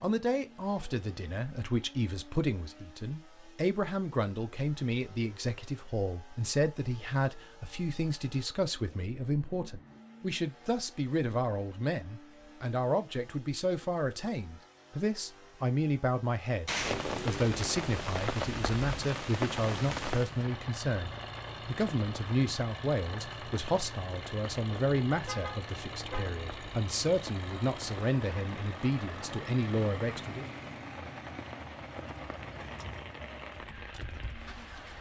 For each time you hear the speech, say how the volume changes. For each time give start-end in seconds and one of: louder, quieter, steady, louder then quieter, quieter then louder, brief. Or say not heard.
0.0-30.4 steady.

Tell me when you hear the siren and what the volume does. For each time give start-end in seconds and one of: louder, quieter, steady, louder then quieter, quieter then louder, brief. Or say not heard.
not heard.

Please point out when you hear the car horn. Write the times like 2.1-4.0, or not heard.
25.2-26.4.